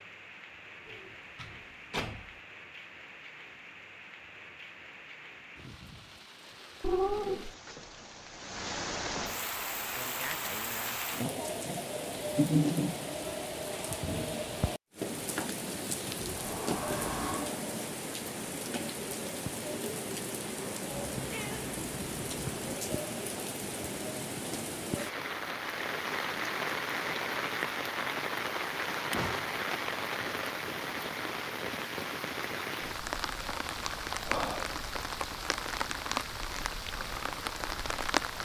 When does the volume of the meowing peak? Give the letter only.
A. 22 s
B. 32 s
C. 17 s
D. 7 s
D.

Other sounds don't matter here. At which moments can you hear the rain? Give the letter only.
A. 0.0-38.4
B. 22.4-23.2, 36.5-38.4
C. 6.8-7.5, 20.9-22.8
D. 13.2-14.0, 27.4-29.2
A.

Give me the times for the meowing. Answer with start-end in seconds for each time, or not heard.
6.8-7.5, 20.9-22.8.